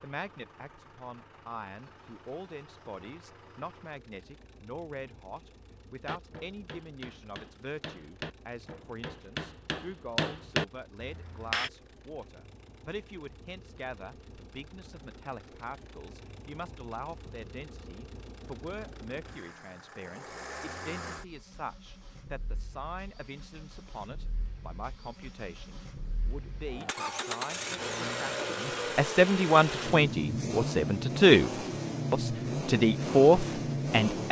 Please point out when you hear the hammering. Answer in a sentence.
The hammering can be heard from 6.0 to 11.7 s.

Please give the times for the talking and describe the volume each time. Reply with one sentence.
You can hear the talking from 0.0 to 31.5 s, getting louder; and briefly from 32.1 to 34.2 s.